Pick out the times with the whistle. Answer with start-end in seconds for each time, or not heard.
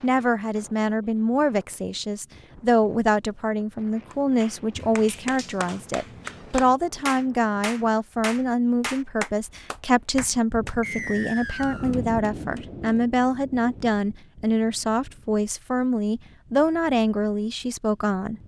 10.8-11.9.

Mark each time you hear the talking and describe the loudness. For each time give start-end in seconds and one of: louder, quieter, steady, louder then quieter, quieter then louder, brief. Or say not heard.
0.0-18.4 steady.